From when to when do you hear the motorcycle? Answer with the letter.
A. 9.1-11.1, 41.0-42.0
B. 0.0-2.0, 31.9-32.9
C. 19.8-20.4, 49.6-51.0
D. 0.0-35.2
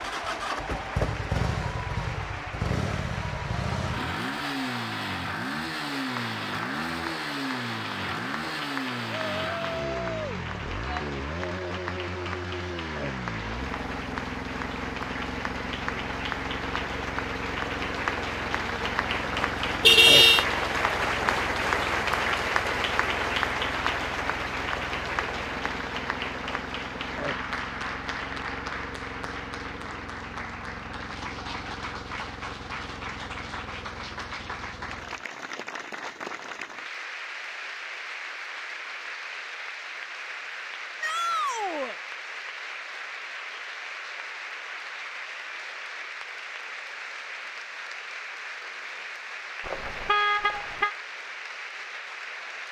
D.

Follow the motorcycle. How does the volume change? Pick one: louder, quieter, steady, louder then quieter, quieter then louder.
quieter.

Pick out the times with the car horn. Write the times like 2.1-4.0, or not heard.
19.8-20.4, 49.6-51.0.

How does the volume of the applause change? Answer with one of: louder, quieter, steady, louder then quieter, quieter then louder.
louder then quieter.